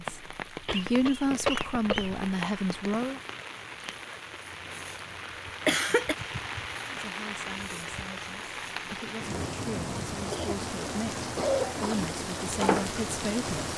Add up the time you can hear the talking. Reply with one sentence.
You can hear the talking for 10 seconds altogether.